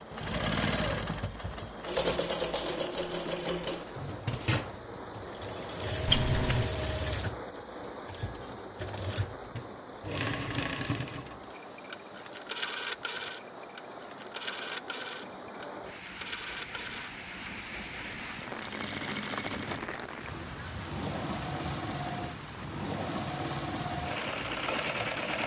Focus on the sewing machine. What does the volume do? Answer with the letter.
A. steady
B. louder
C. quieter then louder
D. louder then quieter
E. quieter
C.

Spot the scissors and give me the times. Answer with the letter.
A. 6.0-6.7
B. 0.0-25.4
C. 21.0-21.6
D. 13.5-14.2
A.